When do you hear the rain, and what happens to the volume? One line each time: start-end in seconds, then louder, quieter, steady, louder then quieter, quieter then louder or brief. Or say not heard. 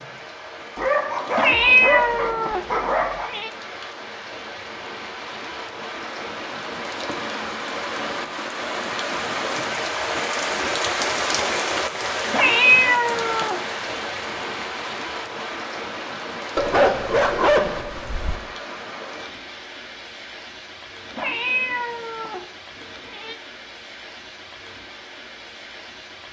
0.0-26.2 louder then quieter.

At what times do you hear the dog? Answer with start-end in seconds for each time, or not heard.
0.8-3.3, 16.6-18.4.